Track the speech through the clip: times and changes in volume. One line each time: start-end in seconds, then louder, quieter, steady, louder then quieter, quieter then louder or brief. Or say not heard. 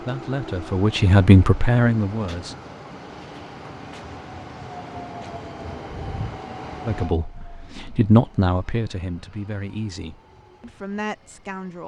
0.0-2.5 brief
6.8-11.8 louder then quieter.